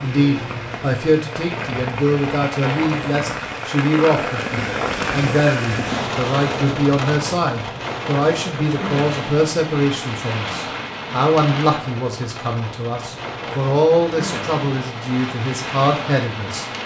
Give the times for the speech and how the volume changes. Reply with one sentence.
The speech can be heard from 0.0 to 16.6 s, at a steady volume.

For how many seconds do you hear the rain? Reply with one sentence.
You can hear the rain for 17 seconds altogether.